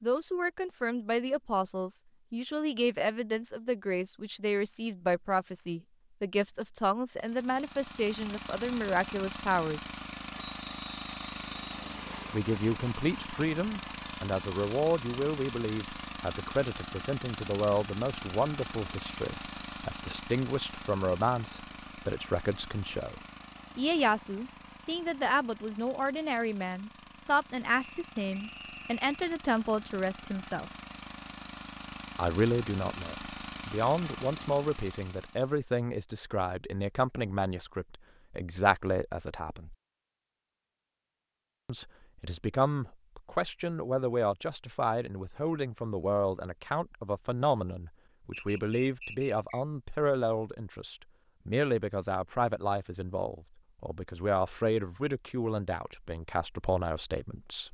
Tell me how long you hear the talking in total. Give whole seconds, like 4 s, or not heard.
52 s.